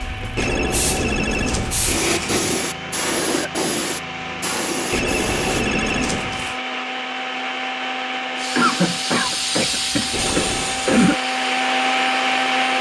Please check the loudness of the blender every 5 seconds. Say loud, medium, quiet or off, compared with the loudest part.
medium, medium, loud.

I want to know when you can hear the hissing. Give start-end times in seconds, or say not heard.
0.0-5.7, 8.3-12.7.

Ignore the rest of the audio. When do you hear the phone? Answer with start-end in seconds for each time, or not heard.
0.3-2.6, 4.9-6.5, 10.1-10.8.